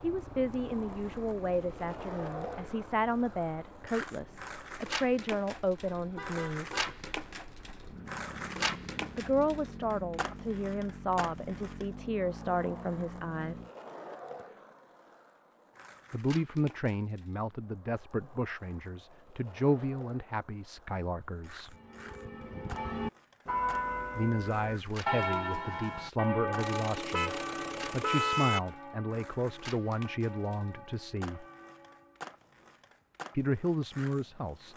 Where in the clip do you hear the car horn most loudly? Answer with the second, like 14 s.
28 s.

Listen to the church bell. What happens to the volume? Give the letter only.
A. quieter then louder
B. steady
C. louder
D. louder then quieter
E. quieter
E.